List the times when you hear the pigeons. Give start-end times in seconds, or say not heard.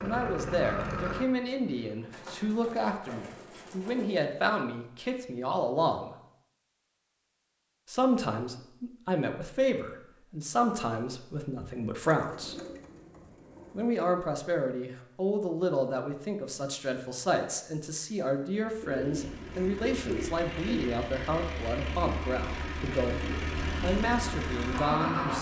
2.1-4.3, 11.6-13.9, 18.8-20.9.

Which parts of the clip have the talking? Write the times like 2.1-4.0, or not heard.
0.0-6.2, 7.8-12.6, 13.7-25.3.